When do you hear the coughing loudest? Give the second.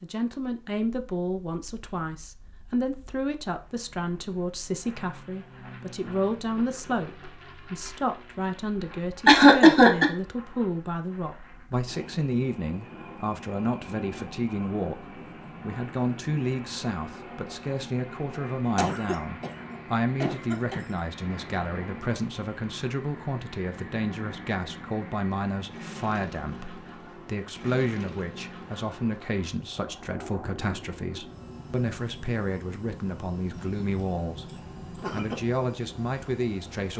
10 s.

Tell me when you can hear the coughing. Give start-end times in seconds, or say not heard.
9.2-10.1, 18.8-21.1, 33.5-35.4.